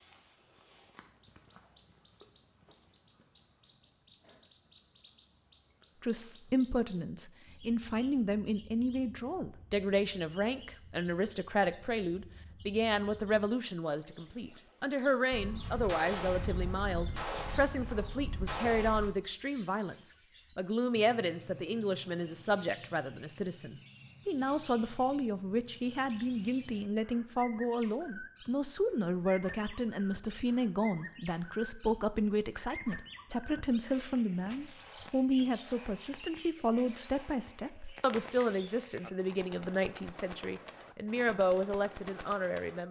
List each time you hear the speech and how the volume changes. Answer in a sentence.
You can hear the speech from 6.0 to 42.8 s, at a steady volume.